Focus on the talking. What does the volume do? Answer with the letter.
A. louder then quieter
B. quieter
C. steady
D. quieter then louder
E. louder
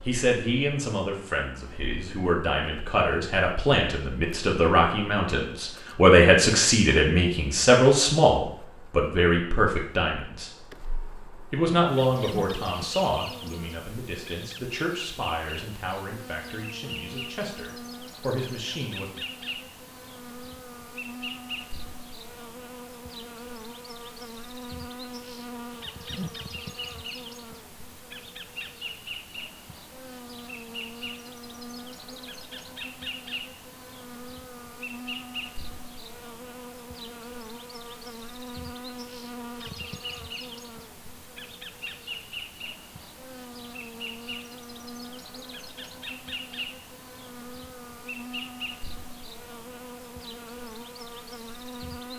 A.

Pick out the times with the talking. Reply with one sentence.
You can hear the talking from 0.0 to 10.5 s and from 11.5 to 19.1 s.